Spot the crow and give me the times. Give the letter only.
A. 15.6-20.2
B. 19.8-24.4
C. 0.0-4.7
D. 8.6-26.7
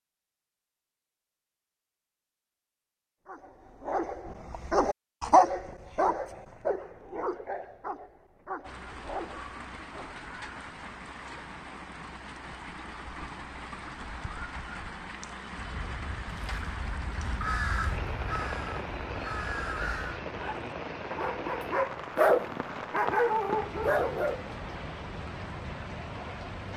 A.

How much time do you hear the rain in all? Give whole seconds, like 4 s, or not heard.
18 s.